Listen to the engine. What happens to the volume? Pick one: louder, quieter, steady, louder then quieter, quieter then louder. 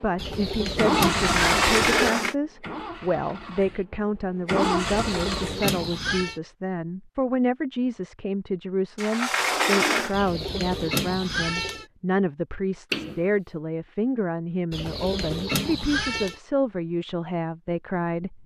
quieter then louder.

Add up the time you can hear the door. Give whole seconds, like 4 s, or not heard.
3 s.